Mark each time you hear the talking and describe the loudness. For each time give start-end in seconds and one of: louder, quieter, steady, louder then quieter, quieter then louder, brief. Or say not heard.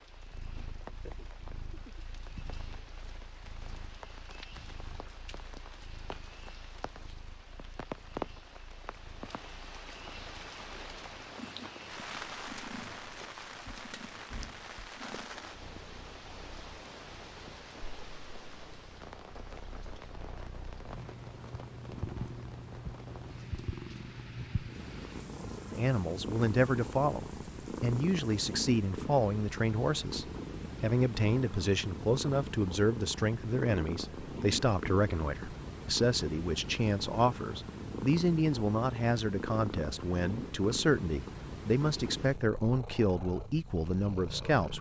25.7-44.7 steady.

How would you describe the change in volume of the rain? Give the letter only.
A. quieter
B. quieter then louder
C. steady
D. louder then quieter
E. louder
D.